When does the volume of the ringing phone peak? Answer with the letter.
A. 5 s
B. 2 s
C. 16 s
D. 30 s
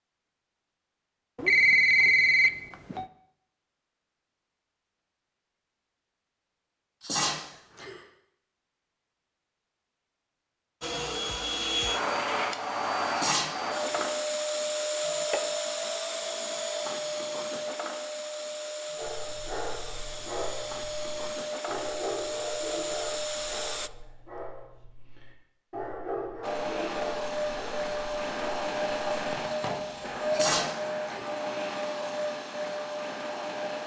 B.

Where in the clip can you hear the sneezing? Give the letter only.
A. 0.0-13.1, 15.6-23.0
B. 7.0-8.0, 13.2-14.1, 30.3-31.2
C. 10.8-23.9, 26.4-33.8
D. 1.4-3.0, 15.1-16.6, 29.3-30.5
B.